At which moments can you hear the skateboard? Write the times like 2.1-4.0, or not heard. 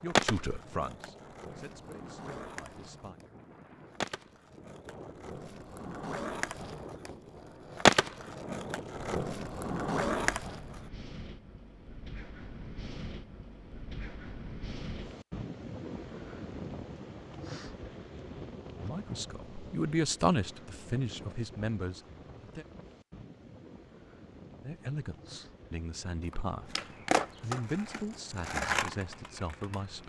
0.1-10.8, 26.2-30.0.